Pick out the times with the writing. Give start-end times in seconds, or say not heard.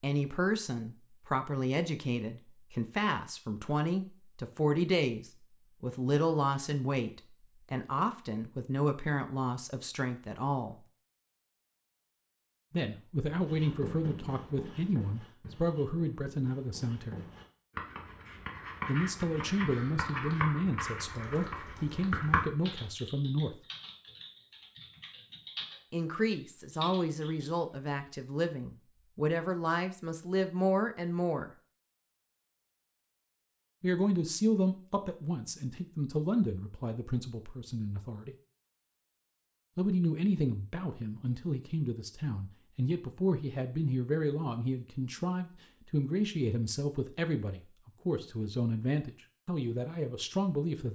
13.2-22.8.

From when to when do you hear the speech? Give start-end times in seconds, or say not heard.
0.0-10.8, 12.7-17.2, 18.9-23.6, 25.9-31.5, 33.8-38.4, 39.8-50.9.